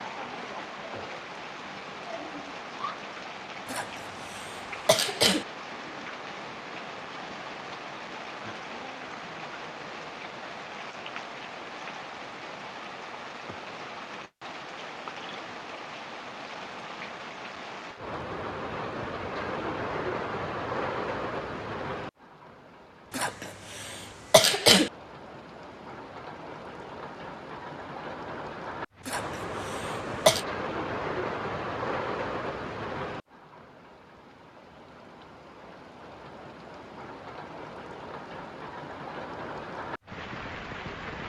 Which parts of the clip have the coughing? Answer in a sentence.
You can hear the coughing from 3.6 to 5.5 s, from 23.1 to 24.9 s and from 29.1 to 30.4 s.